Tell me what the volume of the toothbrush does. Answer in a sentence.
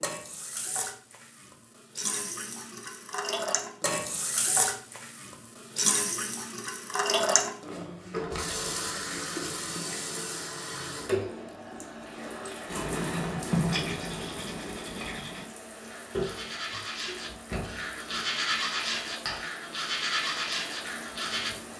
The loudness of the toothbrush goes down, then up.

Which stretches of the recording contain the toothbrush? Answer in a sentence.
The toothbrush can be heard from 12.7 to 21.5 s.